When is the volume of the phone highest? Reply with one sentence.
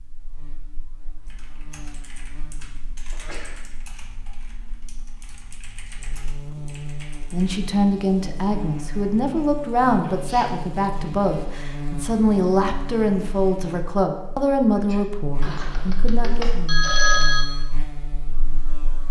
The volume of the phone peaks at 17 seconds.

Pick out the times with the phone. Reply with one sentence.
The phone can be heard from 15.4 to 17.4 s.